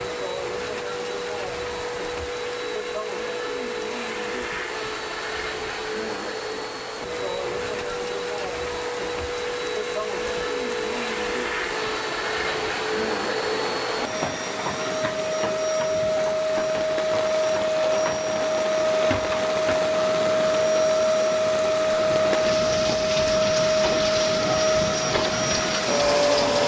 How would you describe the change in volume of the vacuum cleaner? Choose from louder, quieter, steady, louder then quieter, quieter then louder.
louder.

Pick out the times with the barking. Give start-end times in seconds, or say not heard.
not heard.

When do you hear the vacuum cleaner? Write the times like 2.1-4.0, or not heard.
0.0-26.6.